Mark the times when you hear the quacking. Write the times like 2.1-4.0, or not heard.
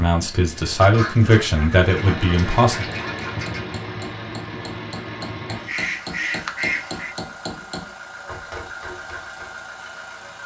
0.8-3.6, 5.5-7.2.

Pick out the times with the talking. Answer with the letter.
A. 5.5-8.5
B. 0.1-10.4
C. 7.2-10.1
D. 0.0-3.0
D.